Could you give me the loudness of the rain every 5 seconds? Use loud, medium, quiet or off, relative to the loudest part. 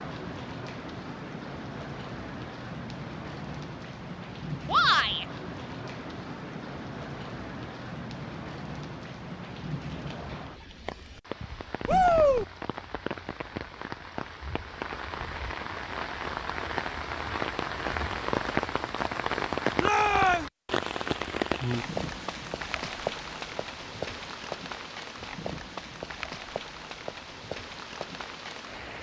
medium, medium, medium, loud, loud, medium.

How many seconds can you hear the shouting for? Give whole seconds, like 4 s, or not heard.
2 s.